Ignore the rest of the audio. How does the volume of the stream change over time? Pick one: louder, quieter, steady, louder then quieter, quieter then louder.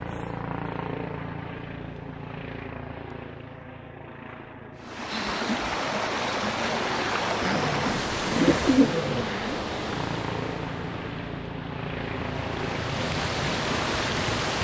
quieter then louder.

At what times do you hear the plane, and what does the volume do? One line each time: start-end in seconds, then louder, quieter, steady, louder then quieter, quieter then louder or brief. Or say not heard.
0.0-14.6 quieter then louder.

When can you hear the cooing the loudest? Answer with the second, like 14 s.
9 s.